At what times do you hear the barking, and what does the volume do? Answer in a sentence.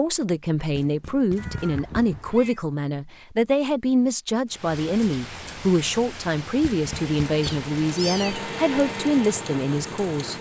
The barking can't be heard in this clip.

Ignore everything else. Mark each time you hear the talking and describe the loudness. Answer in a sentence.
You can hear the talking from 0.0 to 10.3 s, at a steady volume.